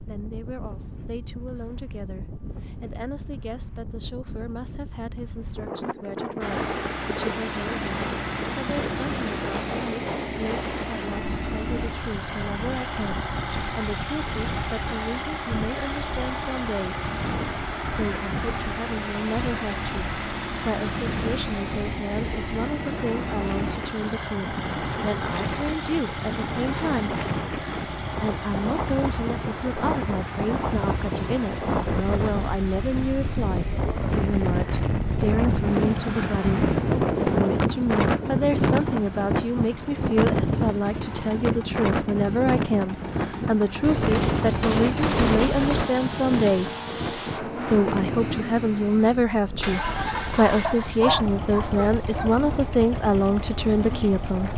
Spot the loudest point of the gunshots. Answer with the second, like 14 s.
45 s.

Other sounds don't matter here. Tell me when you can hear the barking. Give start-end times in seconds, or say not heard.
50.6-52.4.